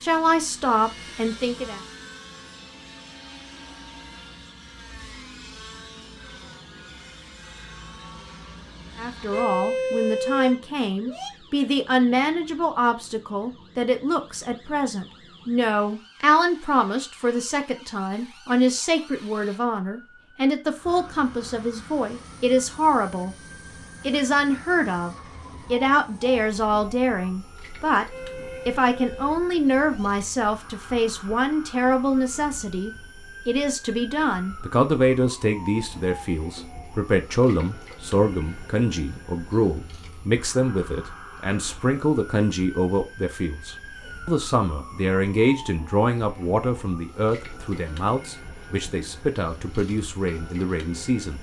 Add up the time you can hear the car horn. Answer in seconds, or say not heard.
4 s.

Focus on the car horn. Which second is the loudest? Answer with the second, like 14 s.
10 s.